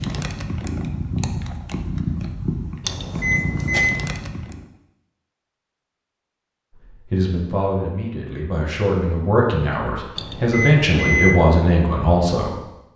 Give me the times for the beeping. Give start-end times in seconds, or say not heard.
2.9-4.0, 10.2-11.4.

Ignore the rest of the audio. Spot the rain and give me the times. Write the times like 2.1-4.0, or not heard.
not heard.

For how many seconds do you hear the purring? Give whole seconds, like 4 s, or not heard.
5 s.